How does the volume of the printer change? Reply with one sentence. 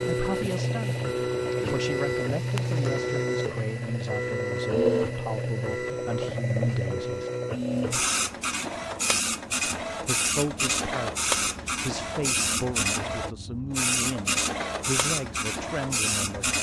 The volume of the printer stays about the same.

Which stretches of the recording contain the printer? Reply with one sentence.
The printer can be heard from 0.0 to 16.5 s.